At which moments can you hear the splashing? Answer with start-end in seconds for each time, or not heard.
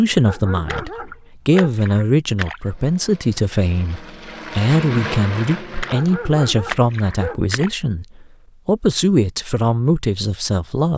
0.7-2.6, 5.8-7.7.